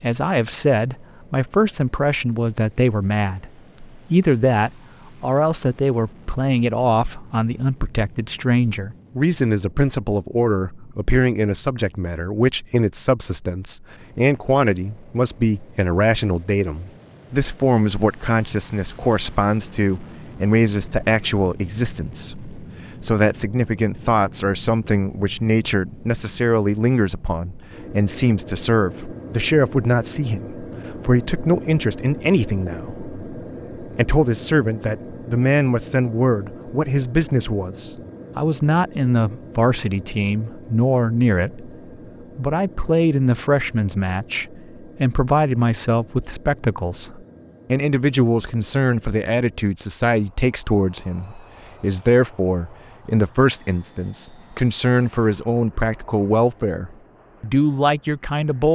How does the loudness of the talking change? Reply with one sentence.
The loudness of the talking stays about the same.